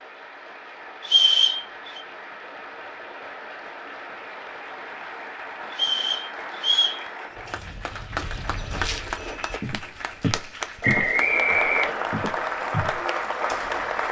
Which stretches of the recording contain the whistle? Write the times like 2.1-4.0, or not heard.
1.0-2.0, 5.7-7.0, 10.8-12.1.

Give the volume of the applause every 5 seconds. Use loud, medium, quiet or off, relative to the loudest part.
medium, medium, loud.